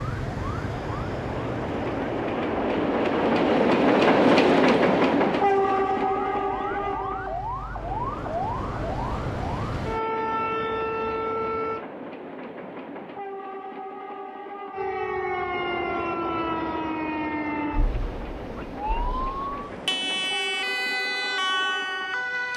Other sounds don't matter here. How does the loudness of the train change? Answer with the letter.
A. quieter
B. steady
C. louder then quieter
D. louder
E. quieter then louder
A.